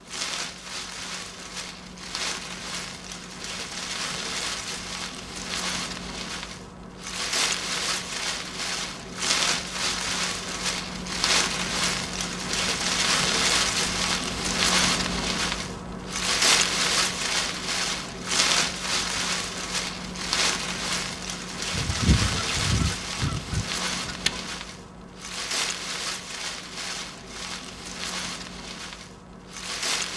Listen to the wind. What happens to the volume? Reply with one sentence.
The volume of the wind goes up, then down.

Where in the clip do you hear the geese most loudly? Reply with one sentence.
The volume of the geese peaks at 22 seconds.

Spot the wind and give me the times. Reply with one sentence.
The wind can be heard from 0.0 to 30.1 s.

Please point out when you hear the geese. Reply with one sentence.
You can hear the geese from 21.7 to 24.4 s.